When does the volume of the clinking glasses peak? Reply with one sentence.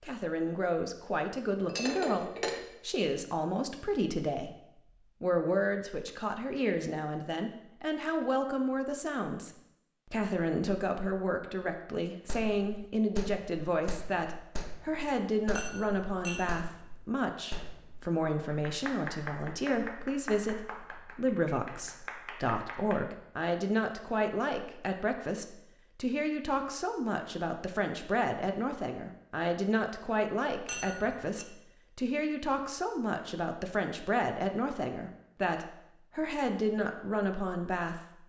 The loudest moment of the clinking glasses is at 2 seconds.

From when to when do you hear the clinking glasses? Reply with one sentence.
The clinking glasses can be heard from 1.5 to 2.7 s, from 15.6 to 16.6 s and from 30.6 to 31.4 s.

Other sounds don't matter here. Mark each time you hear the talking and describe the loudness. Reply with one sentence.
You can hear the talking from 0.0 to 4.5 s, at a steady volume; and from 5.2 to 38.2 s, at a steady volume.